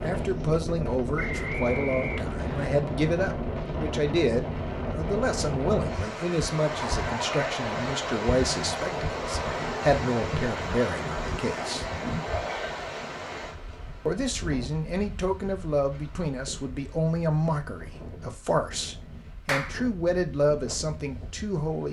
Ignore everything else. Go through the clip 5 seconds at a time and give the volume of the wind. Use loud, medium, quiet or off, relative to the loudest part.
loud, loud, loud, quiet, quiet.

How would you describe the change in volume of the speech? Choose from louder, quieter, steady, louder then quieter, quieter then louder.
steady.